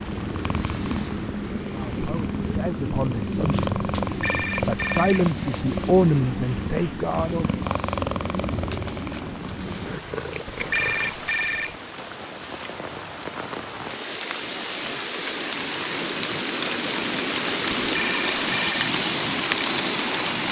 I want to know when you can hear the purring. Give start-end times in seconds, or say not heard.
0.0-11.2.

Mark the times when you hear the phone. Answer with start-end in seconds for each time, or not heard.
4.0-5.3, 10.4-11.8, 17.9-18.9.